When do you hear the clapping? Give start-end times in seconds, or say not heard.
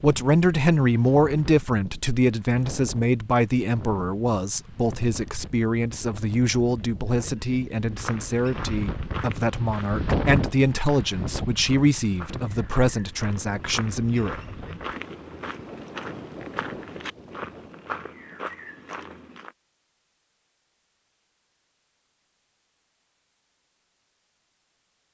not heard.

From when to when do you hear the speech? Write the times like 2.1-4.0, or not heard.
0.0-14.4.